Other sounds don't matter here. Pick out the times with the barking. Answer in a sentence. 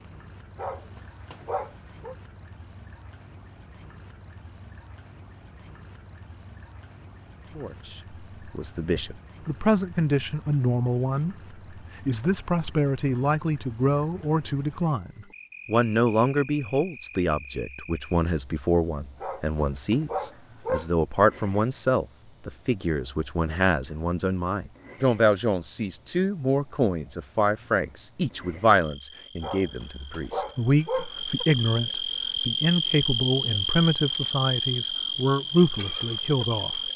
The barking can be heard from 0.6 to 2.1 s, from 19.2 to 20.9 s and from 29.4 to 31.1 s.